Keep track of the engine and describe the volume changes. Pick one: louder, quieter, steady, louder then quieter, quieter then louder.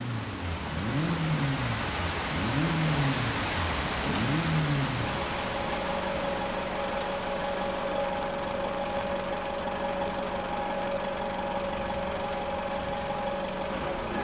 steady.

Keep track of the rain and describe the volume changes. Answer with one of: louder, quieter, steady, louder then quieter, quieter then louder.
quieter.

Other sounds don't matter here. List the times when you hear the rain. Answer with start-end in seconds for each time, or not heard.
0.0-14.1.